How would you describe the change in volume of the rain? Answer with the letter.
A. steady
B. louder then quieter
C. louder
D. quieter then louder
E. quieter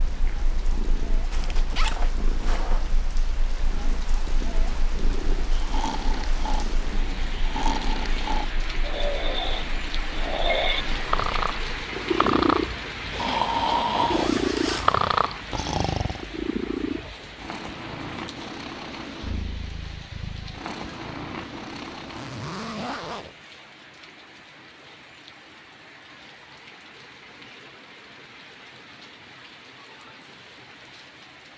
B.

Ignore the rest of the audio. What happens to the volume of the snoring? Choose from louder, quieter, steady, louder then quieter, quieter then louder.
louder.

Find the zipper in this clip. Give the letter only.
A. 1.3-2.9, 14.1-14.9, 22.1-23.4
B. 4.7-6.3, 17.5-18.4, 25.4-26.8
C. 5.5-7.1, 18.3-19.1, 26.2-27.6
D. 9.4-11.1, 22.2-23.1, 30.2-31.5
A.